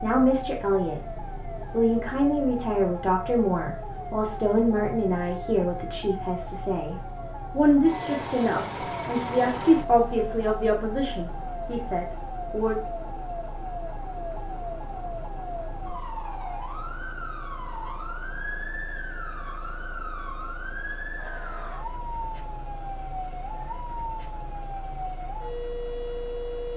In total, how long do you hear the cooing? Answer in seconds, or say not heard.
not heard.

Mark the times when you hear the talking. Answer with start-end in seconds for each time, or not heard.
0.0-12.8.